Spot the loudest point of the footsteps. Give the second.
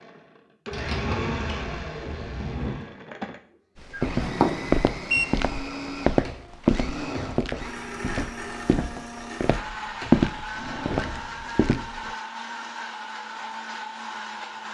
10 s.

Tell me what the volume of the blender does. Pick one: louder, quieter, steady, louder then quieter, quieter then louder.
steady.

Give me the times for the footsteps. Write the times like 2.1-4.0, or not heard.
3.8-12.2.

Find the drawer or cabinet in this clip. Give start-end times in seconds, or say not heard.
0.7-2.8, 6.2-7.5, 10.0-11.4.